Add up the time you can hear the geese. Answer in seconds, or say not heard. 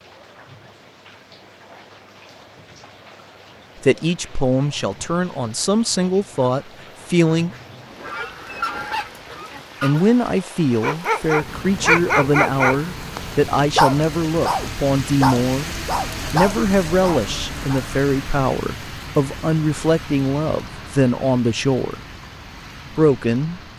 2 s.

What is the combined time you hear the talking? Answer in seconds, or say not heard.
17 s.